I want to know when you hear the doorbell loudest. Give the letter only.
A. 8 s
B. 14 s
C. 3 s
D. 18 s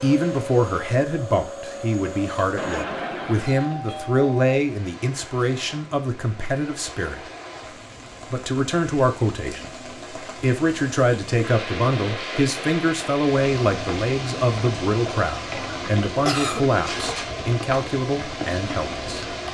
C.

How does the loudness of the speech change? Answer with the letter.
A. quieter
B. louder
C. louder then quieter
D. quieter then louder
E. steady
E.